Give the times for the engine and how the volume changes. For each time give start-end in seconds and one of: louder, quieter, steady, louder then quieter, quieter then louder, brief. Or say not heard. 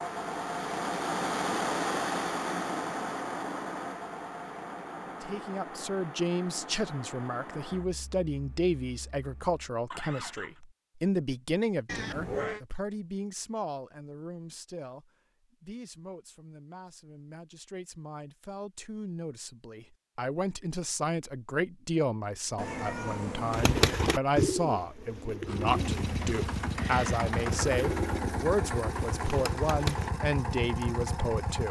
0.0-10.6 quieter
25.4-31.6 steady.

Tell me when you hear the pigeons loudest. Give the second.
24 s.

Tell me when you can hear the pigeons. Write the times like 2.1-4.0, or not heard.
23.5-30.1.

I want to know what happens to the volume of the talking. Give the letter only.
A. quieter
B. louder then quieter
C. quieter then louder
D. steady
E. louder
C.